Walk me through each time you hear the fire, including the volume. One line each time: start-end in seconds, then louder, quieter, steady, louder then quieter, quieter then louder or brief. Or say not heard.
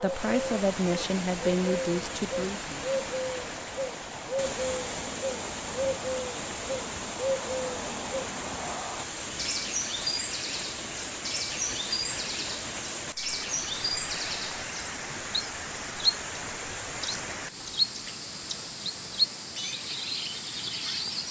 not heard.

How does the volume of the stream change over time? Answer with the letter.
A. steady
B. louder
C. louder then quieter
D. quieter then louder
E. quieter
A.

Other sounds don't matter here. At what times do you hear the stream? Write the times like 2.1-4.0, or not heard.
0.0-21.2.